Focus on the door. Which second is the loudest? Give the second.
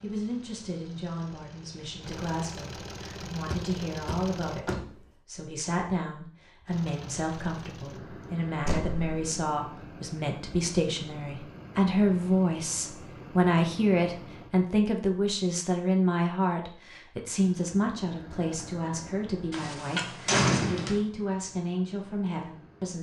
20 s.